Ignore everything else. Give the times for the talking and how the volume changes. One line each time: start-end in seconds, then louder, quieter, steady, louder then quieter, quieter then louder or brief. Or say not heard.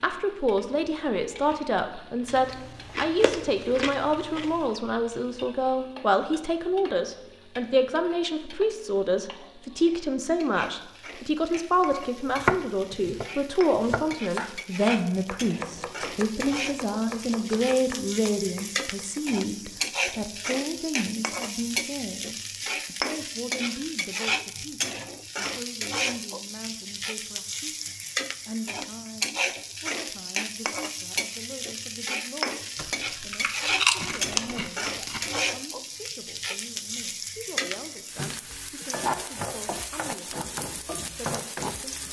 0.0-42.0 quieter.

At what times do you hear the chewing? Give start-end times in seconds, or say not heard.
2.2-4.8, 32.8-35.4.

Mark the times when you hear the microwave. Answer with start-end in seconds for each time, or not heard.
not heard.